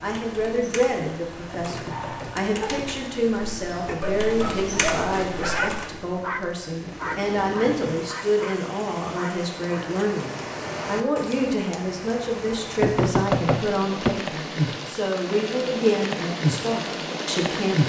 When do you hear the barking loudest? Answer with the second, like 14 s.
6 s.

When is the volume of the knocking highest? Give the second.
13 s.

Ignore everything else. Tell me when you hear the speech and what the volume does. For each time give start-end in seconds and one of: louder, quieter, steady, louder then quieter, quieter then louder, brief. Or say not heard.
0.0-17.8 steady.